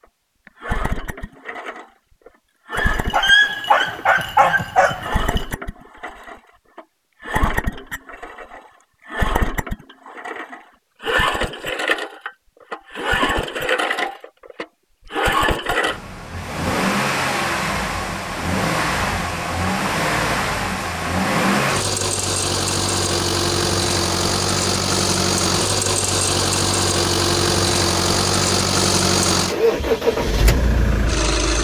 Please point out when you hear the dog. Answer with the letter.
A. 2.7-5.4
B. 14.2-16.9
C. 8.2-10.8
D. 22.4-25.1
A.